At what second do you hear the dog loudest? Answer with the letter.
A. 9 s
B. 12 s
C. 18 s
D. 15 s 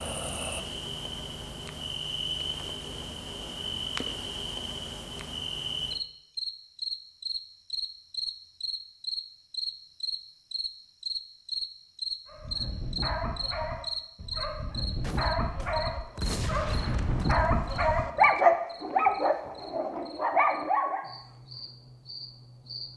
C.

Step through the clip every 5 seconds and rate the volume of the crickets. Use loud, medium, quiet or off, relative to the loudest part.
loud, loud, loud, medium, quiet.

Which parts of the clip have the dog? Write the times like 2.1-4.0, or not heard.
12.2-21.1.